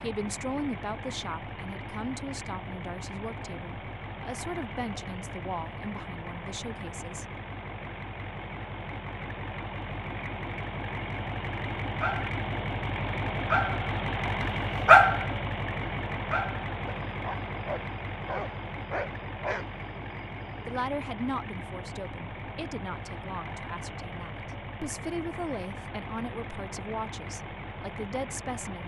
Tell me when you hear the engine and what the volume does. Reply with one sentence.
The engine can be heard from 0.0 to 28.8 s, getting louder then quieter.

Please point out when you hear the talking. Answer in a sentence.
The talking can be heard from 0.0 to 7.2 s and from 20.6 to 28.8 s.